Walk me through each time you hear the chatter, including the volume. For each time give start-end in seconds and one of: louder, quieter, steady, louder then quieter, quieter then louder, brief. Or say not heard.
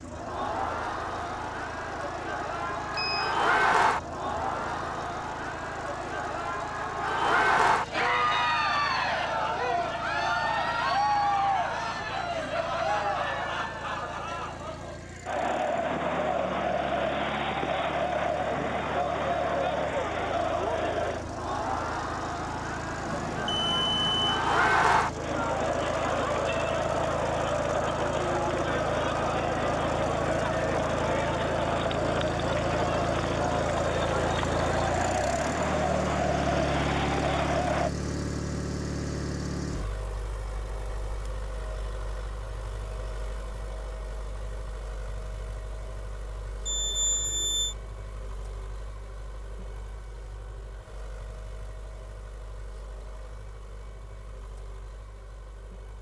0.0-37.9 steady.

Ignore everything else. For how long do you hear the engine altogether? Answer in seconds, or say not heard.
56 s.